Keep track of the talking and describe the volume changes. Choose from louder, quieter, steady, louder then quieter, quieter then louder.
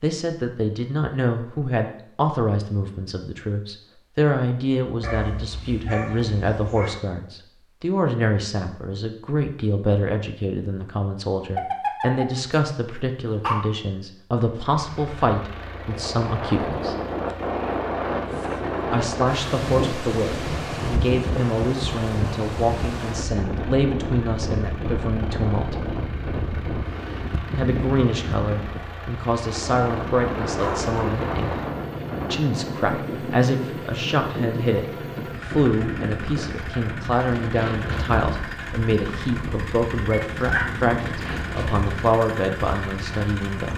steady.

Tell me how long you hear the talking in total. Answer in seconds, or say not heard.
39 s.